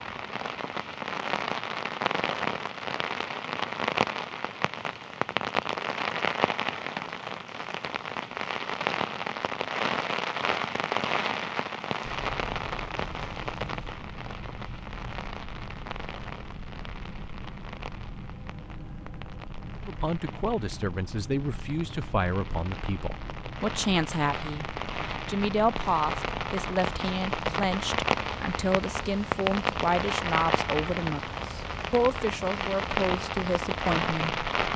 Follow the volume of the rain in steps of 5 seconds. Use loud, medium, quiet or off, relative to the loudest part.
loud, loud, loud, quiet, medium, loud, loud.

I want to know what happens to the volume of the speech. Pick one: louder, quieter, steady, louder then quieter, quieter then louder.
steady.